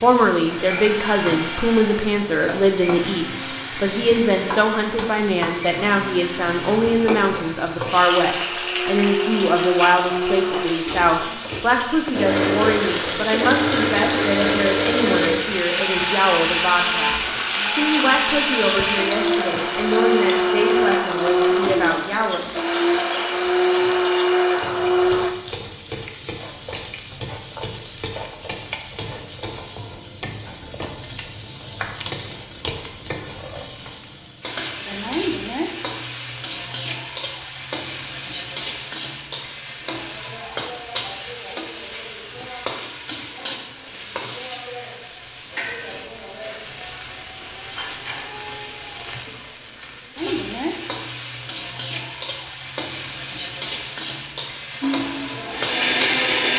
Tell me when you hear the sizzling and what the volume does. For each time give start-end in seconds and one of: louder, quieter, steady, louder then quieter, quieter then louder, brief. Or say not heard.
0.0-56.5 steady.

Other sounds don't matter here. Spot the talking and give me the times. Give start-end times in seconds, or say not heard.
0.0-22.4.